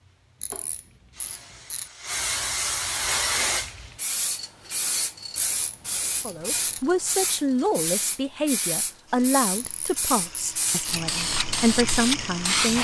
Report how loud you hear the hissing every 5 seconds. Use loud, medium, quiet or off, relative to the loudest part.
loud, medium, loud.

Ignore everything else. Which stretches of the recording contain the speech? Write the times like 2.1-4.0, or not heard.
6.2-12.7.